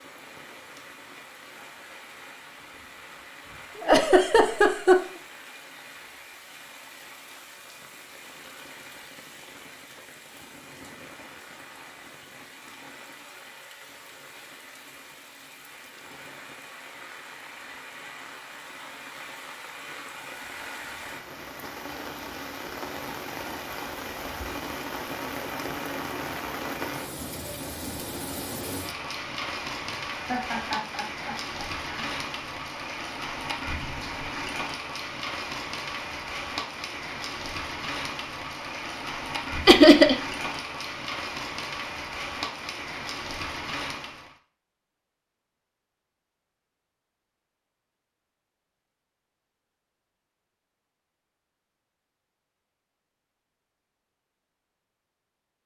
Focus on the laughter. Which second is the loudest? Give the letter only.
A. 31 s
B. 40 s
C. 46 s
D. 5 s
B.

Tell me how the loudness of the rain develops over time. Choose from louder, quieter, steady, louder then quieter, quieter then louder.
louder.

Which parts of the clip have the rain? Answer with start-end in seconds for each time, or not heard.
0.0-44.4.